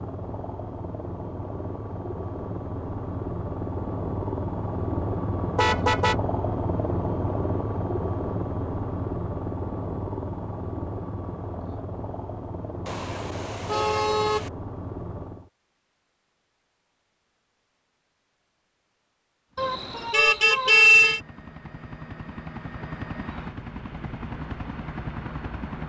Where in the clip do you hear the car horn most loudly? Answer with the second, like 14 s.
21 s.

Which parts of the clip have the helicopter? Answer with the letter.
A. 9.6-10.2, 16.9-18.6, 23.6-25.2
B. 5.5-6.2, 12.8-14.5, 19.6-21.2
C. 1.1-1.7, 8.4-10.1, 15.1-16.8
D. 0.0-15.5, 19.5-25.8
D.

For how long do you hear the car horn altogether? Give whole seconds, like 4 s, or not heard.
4 s.